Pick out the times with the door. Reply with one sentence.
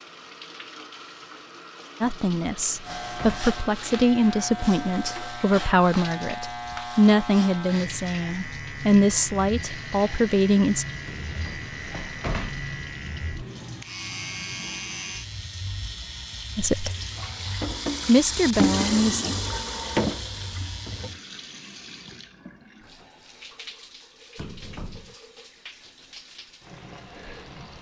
The door can be heard from 2.0 to 3.5 s, from 11.1 to 12.7 s and from 24.4 to 25.1 s.